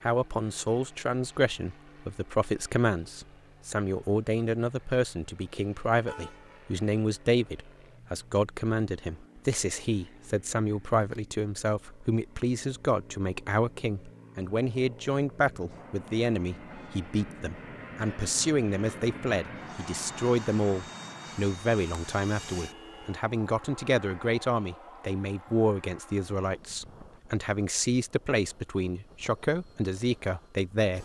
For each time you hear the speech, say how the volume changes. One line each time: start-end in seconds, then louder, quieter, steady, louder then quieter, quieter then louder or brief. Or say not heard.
0.0-31.0 steady.